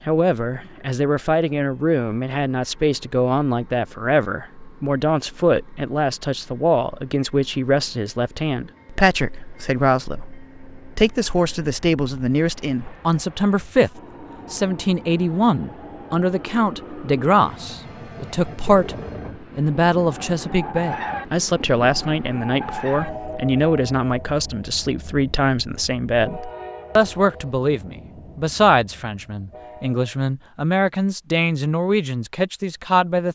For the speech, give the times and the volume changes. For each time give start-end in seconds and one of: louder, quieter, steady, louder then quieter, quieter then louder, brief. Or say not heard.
0.1-18.9 steady
19.6-33.2 steady.